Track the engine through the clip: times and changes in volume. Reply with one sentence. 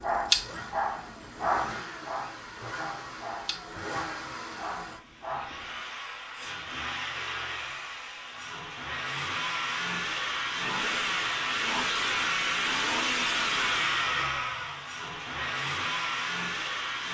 The engine can be heard from 0.0 to 17.0 s, getting louder.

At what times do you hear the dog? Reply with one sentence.
You can hear the dog from 0.0 to 5.8 s.